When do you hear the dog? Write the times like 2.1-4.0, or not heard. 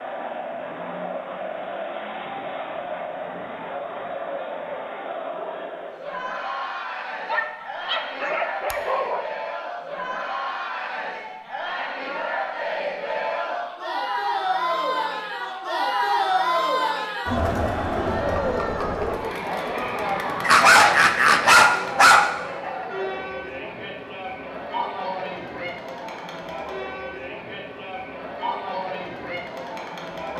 7.2-9.2, 20.4-22.3.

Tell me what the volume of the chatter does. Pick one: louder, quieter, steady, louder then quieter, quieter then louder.
louder then quieter.